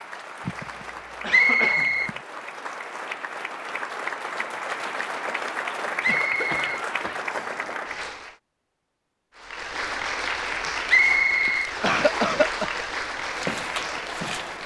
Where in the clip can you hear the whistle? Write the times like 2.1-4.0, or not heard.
1.2-2.1, 6.0-7.6, 10.8-12.2.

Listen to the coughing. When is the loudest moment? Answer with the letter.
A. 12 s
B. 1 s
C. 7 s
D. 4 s
A.